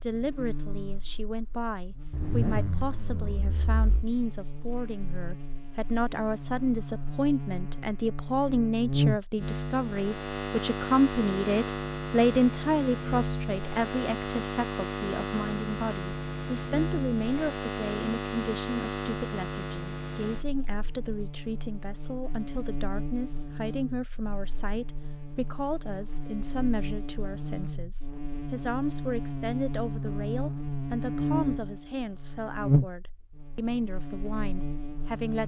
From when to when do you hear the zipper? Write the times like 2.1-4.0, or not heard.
2.1-4.0.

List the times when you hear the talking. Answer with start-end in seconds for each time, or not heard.
0.0-35.4.